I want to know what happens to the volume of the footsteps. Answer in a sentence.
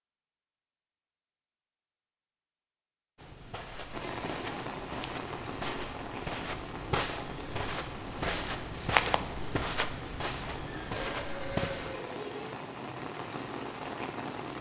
The volume of the footsteps goes up, then down.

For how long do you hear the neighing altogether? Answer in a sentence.
The neighing can be heard for 2 seconds in total.